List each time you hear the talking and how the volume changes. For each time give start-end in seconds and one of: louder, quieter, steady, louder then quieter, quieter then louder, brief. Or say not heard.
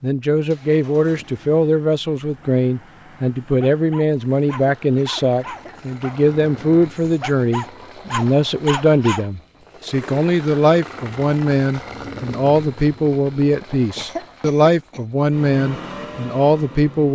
0.0-17.1 steady.